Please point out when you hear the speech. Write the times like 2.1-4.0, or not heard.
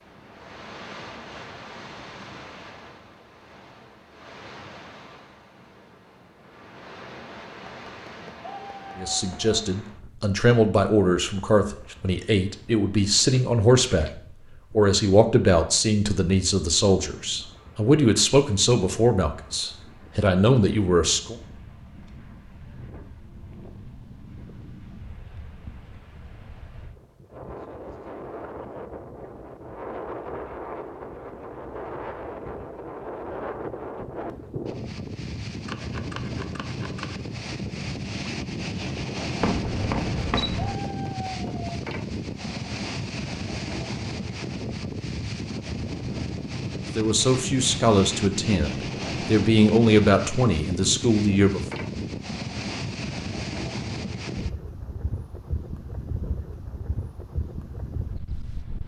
8.9-14.1, 14.7-21.4, 47.0-51.6.